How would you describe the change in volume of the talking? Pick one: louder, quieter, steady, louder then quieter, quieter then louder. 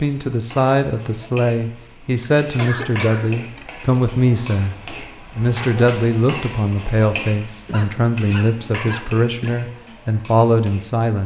steady.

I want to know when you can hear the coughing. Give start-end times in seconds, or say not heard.
2.4-4.0, 7.5-9.5.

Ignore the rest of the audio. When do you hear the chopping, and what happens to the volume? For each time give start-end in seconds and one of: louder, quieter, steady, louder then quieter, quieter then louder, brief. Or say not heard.
not heard.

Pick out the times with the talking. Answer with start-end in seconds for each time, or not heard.
0.0-4.8, 5.3-11.2.